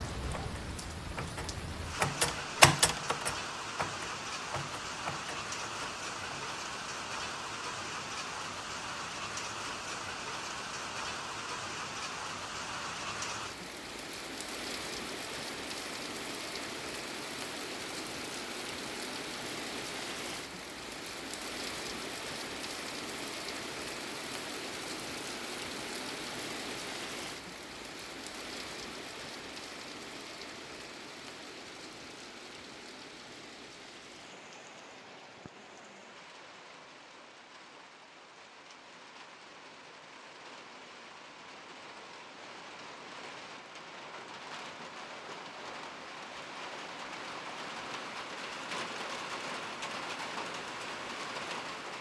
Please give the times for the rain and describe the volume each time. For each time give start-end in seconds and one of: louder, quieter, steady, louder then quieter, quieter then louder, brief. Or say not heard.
0.0-51.9 quieter then louder.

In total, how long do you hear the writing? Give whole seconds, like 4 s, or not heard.
not heard.